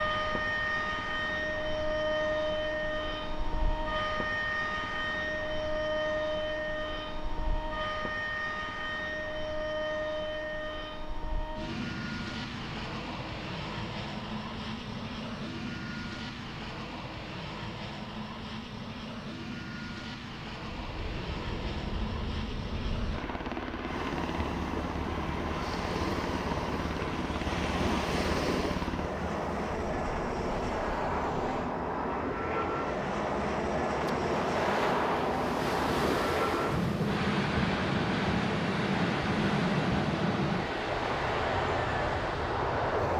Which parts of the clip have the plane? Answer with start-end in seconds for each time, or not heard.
0.0-43.1.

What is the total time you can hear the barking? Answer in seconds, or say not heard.
not heard.